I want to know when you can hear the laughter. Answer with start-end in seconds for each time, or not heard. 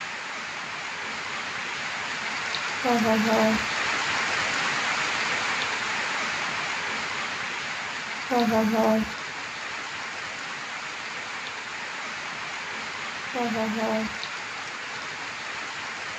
2.8-3.6, 8.3-9.2, 13.3-14.2.